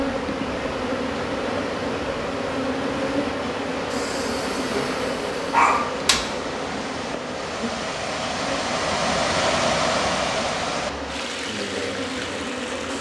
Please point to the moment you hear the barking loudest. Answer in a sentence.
The loudest moment of the barking is at 6 seconds.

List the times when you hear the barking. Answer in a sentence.
You can hear the barking from 3.9 to 6.2 s.